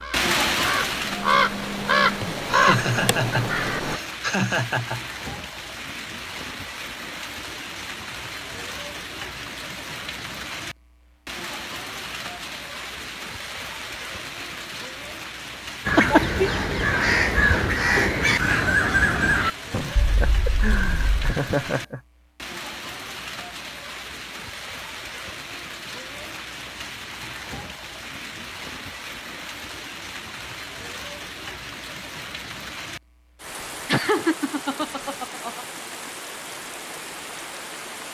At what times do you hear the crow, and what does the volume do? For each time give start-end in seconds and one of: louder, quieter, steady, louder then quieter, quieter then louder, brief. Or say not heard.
0.0-4.0 louder then quieter
15.8-21.4 quieter.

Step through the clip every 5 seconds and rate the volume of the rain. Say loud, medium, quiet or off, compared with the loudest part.
loud, medium, medium, medium, medium, medium, medium, medium.